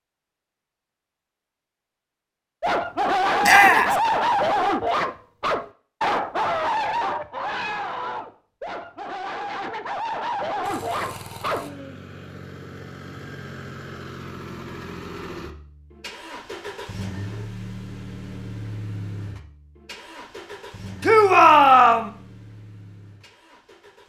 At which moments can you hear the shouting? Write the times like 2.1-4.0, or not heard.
3.4-4.0, 21.0-22.1.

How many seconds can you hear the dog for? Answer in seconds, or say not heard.
9 s.